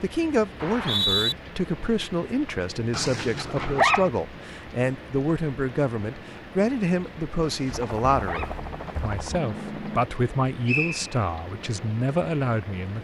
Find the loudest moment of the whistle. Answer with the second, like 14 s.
1 s.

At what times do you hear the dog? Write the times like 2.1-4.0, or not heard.
2.9-4.1, 7.4-8.6.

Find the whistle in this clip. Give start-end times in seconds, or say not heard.
0.6-1.4, 10.7-11.1.